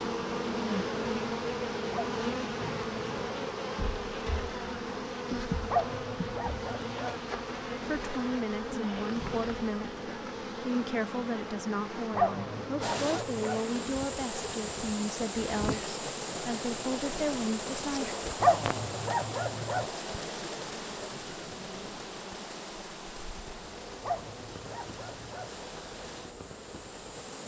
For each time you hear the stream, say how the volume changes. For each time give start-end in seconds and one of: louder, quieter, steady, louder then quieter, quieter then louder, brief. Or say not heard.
12.8-27.4 quieter.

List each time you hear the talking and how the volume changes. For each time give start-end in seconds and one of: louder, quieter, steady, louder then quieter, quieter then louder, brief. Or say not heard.
7.8-18.1 steady.